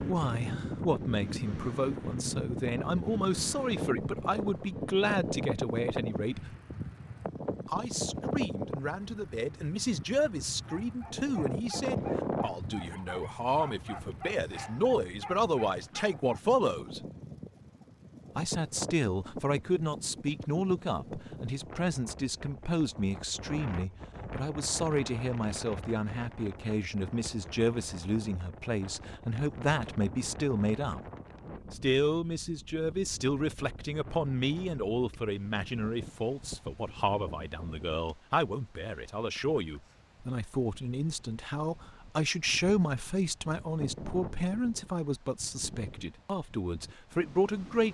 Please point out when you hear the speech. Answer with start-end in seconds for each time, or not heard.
0.0-6.4, 7.7-17.0, 18.4-31.0, 31.7-47.8.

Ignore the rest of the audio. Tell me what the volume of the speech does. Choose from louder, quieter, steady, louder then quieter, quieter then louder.
steady.